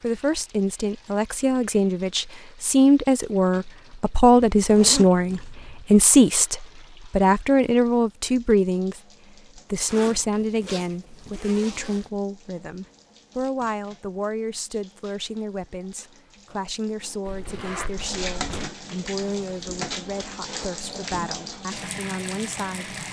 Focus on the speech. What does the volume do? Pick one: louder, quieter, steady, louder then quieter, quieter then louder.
quieter.